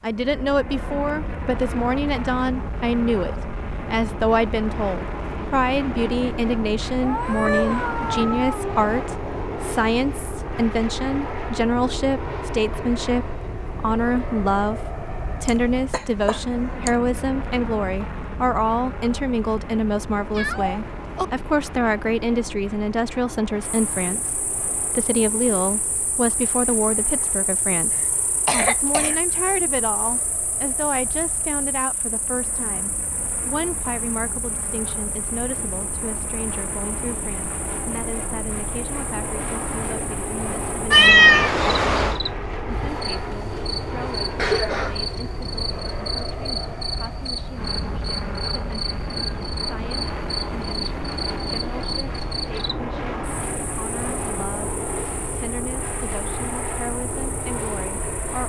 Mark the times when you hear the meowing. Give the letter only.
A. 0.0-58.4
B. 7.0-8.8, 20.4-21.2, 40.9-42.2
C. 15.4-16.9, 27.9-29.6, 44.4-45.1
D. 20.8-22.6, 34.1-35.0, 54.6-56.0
B.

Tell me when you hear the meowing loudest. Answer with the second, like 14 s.
41 s.